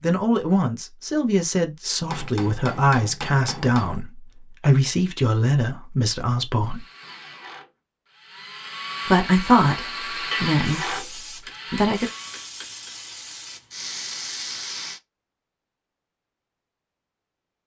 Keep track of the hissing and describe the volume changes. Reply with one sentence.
The loudness of the hissing goes up.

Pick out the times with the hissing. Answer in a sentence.
You can hear the hissing from 10.6 to 15.0 s.